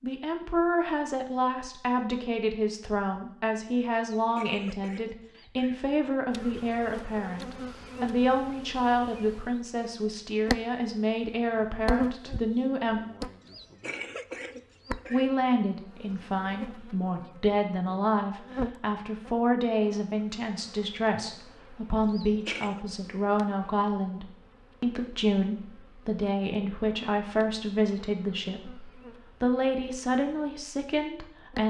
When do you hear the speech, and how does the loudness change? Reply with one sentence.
The speech can be heard from 0.0 to 13.0 s, at a steady volume; and from 15.1 to 31.6 s, at a steady volume.